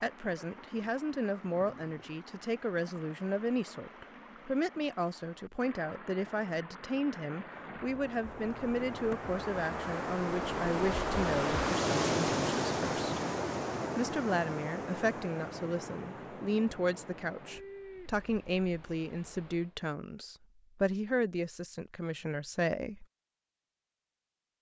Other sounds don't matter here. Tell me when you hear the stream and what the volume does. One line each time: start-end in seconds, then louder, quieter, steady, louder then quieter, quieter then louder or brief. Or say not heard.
0.0-19.8 louder then quieter.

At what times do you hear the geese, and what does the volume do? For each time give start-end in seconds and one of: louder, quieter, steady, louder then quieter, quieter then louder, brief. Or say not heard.
not heard.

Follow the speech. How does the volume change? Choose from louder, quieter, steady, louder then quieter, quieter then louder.
steady.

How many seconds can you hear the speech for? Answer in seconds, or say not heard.
22 s.